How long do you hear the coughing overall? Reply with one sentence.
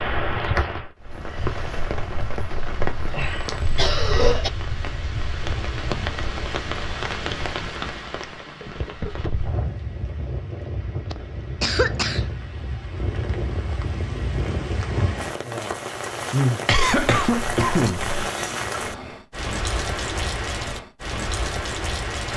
You can hear the coughing for 5 seconds altogether.